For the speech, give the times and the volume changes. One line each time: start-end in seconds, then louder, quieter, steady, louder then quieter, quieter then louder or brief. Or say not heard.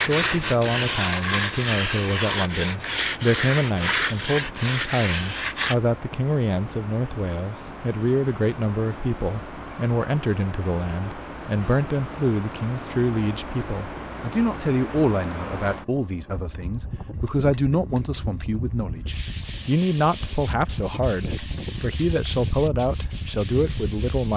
0.1-24.3 steady.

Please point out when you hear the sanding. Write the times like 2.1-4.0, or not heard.
0.0-5.8, 19.1-24.3.